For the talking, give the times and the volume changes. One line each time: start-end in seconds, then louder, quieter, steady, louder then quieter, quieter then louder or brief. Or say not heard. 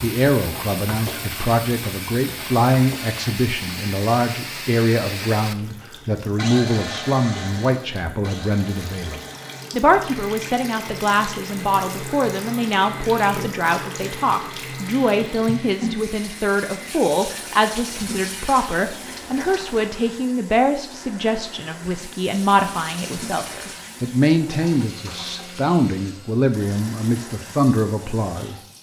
0.0-28.7 steady.